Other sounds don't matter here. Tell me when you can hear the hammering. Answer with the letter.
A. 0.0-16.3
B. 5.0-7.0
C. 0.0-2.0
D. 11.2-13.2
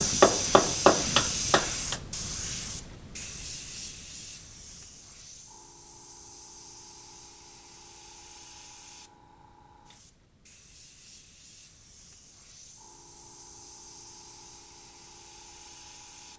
C.